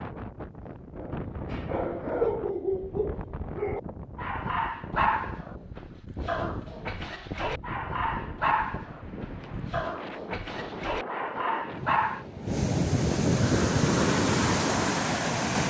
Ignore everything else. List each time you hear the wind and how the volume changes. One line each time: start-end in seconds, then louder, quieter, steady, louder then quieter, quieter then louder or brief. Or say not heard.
0.0-15.6 louder.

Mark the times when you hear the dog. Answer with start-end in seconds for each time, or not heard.
0.9-12.2.